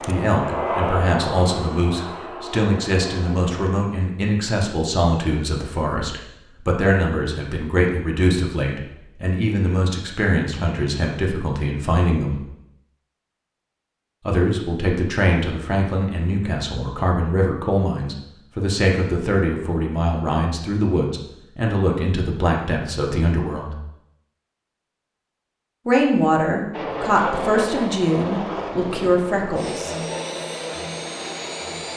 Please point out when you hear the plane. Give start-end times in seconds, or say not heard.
0.0-3.7, 26.7-31.9.